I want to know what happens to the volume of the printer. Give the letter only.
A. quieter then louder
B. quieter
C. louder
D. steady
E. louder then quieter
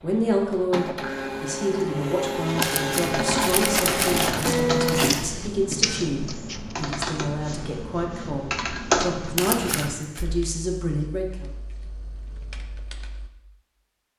E.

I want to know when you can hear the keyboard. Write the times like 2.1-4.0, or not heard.
3.0-13.3.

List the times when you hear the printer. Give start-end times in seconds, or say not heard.
0.0-6.8.